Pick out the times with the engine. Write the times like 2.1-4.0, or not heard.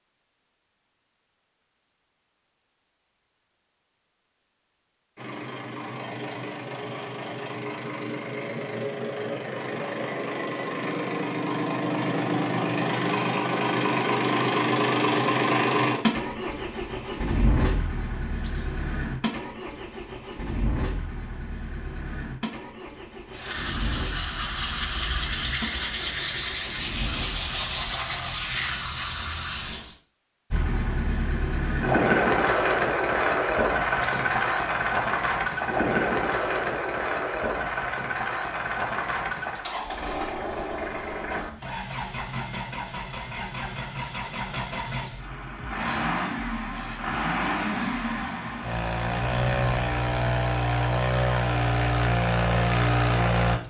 5.2-27.9, 30.5-53.6.